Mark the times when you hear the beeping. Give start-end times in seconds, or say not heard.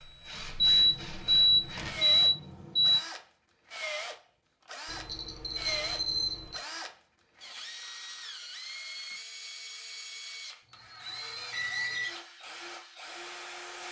0.6-3.0, 4.8-6.7, 11.5-12.1.